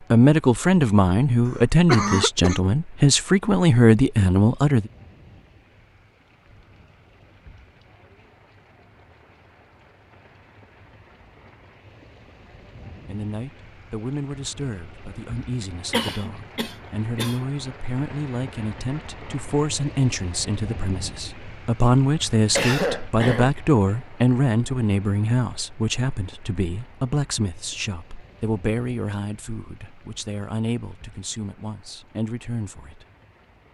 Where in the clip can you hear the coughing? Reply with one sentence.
You can hear the coughing from 1.6 to 2.6 s, from 15.9 to 17.4 s and from 22.6 to 23.6 s.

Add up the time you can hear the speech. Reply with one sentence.
You can hear the speech for 25 seconds altogether.